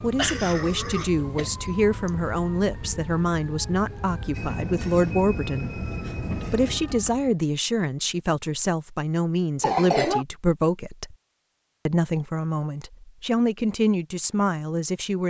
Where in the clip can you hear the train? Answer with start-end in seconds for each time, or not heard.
4.3-6.8.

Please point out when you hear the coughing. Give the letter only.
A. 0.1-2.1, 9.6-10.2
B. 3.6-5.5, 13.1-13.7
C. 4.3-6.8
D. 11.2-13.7
A.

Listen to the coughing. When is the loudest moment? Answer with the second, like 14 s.
10 s.